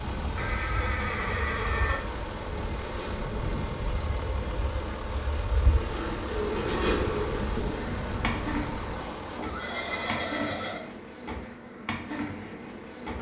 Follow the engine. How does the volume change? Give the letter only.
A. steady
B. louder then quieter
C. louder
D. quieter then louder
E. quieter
A.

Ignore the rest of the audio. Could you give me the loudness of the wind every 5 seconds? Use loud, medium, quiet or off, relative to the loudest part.
loud, loud, off.